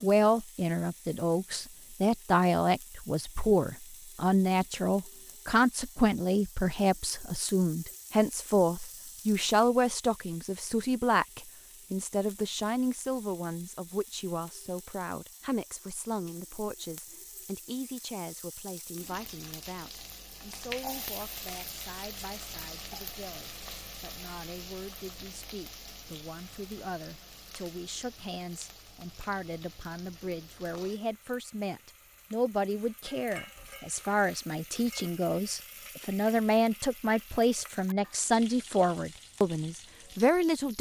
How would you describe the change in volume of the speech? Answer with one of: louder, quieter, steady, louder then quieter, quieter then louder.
quieter then louder.